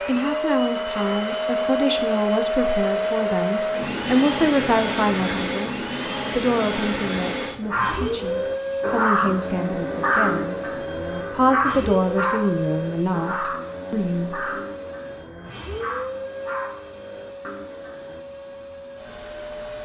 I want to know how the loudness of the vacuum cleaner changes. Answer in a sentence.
The volume of the vacuum cleaner goes down.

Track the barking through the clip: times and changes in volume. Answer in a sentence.
You can hear the barking from 7.6 to 18.2 s, getting quieter.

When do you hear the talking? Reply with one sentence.
The talking can be heard from 0.0 to 14.5 s.